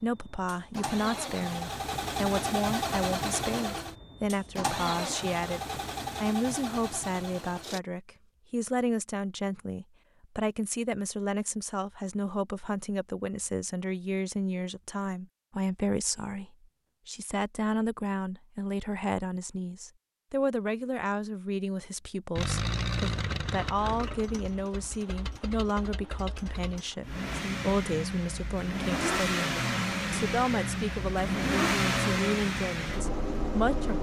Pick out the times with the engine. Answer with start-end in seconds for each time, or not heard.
0.0-7.8, 22.4-33.9.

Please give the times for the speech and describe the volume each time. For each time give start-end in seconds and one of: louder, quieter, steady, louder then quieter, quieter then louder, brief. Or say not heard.
0.0-5.6 steady
6.2-33.9 steady.